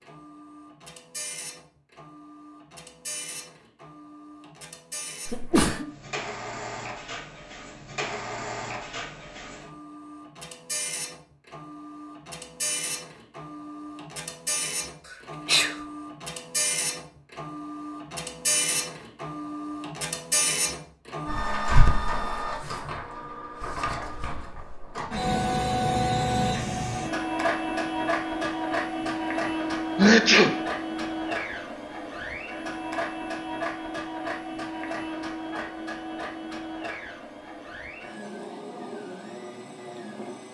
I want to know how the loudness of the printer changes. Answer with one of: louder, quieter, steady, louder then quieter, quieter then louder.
louder then quieter.